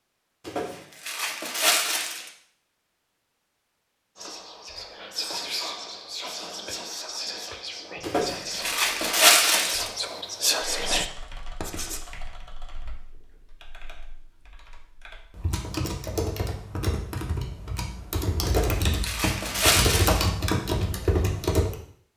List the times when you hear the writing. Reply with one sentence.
You can hear the writing from 11.6 to 12.0 s.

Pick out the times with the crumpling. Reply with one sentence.
The crumpling can be heard from 0.5 to 2.3 s, from 8.0 to 9.9 s and from 18.4 to 20.3 s.